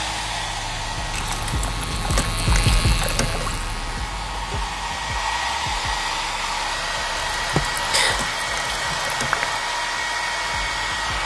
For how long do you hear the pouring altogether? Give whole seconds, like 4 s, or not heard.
5 s.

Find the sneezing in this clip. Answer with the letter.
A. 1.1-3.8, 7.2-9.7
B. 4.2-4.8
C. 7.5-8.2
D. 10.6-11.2
C.